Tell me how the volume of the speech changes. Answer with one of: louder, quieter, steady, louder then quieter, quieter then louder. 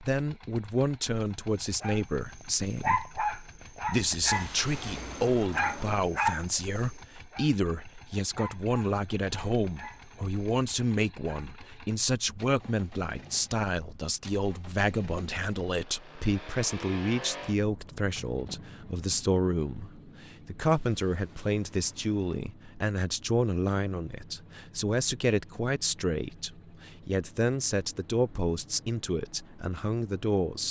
steady.